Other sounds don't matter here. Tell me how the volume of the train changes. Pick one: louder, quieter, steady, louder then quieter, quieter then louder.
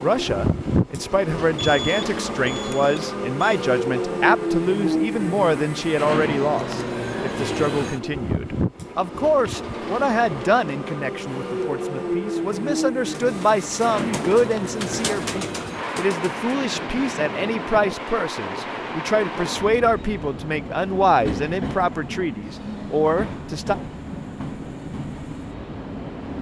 quieter.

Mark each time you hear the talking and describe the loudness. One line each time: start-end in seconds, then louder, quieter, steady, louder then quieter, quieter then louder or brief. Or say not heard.
0.0-23.8 steady.